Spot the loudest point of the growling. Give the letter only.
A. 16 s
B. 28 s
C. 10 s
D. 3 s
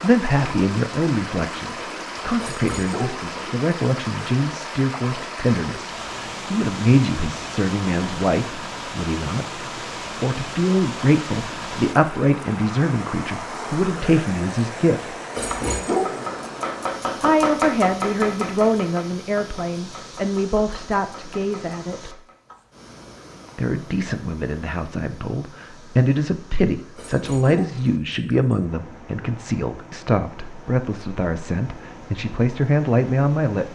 A.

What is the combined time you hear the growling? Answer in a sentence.
You can hear the growling for 4 seconds altogether.